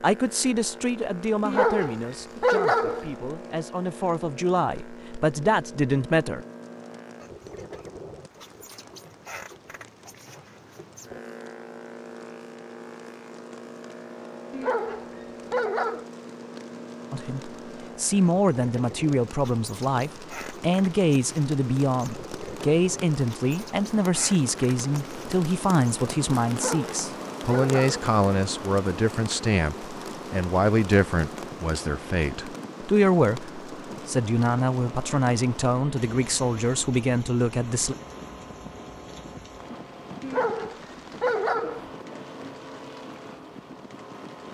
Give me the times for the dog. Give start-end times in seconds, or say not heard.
1.4-3.1, 14.5-16.1, 26.5-28.0, 40.2-41.9.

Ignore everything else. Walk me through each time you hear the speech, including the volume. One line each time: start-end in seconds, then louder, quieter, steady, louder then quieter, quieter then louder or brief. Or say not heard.
0.0-6.4 quieter then louder
17.1-38.0 steady.